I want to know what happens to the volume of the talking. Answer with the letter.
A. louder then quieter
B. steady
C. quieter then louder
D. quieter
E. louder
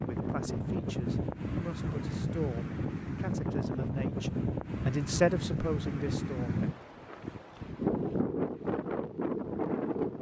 E.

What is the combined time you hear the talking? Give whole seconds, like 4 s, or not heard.
7 s.